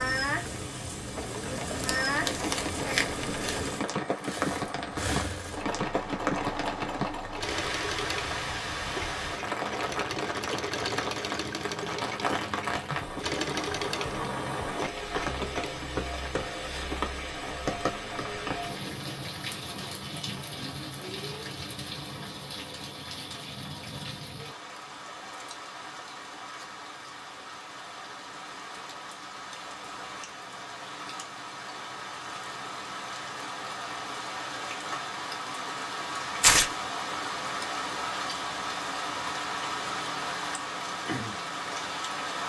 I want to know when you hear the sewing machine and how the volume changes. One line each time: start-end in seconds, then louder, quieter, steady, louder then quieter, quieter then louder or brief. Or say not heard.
0.0-15.7 steady.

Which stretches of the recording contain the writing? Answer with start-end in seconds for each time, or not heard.
not heard.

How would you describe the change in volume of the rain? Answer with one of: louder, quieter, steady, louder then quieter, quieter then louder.
quieter then louder.